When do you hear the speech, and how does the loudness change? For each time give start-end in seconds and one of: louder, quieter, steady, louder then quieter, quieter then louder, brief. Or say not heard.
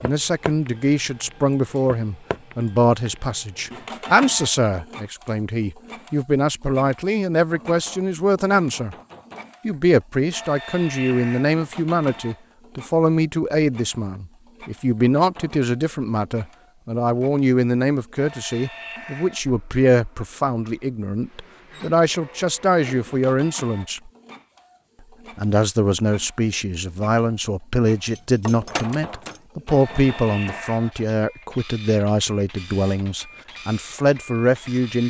0.0-8.9 steady
9.7-24.1 steady
25.4-35.0 steady.